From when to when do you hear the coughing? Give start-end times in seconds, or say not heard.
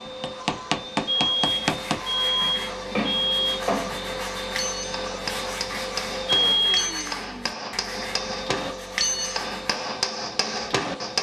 not heard.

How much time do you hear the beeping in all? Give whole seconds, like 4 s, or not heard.
3 s.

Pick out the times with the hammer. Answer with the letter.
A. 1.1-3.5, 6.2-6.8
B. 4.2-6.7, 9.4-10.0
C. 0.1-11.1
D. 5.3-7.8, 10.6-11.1
C.